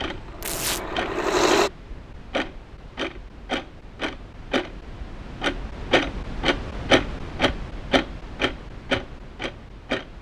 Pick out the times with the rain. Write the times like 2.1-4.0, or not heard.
not heard.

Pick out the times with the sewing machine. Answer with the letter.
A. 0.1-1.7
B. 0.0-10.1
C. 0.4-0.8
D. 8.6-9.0
A.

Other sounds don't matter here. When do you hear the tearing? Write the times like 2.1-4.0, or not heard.
0.4-0.8.